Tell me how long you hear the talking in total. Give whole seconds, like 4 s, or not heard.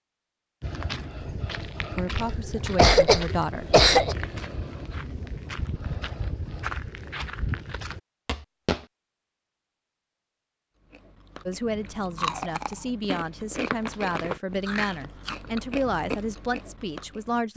8 s.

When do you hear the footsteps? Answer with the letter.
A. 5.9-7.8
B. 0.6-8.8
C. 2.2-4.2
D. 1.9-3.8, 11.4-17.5
B.